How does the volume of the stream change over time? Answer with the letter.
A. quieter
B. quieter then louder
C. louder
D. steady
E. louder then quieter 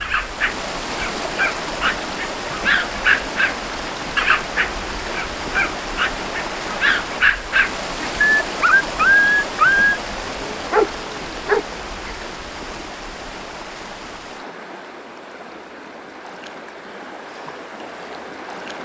A.